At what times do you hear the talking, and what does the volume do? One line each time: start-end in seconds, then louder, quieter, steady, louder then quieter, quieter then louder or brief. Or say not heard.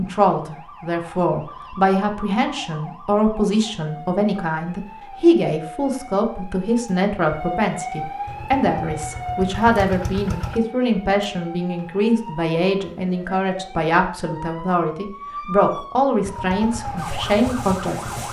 0.0-18.2 steady.